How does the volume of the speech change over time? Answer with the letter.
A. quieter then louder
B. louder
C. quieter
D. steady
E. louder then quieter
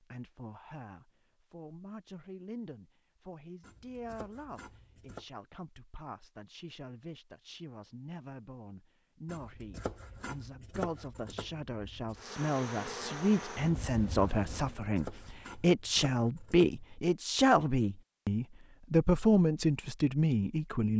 B.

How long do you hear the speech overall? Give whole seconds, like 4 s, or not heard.
21 s.